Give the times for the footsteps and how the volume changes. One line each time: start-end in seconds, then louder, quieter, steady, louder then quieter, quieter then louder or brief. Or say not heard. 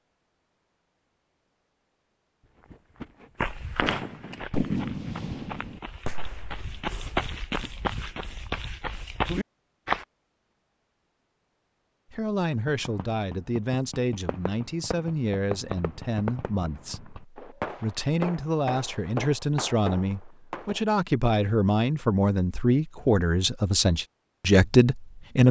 3.4-10.1 quieter then louder.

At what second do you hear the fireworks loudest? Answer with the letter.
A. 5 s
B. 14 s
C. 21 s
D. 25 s
A.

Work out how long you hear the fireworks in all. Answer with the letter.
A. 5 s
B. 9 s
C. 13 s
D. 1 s
C.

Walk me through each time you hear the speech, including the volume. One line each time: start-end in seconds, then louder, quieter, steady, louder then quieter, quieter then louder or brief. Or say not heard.
12.1-25.4 louder.